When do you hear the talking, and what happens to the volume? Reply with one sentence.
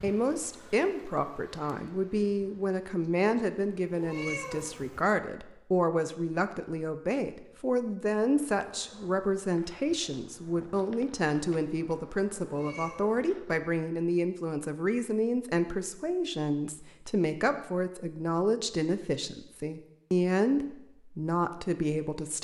The talking can be heard from 0.0 to 22.4 s, at a steady volume.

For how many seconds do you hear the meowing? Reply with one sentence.
You can hear the meowing for 2 seconds altogether.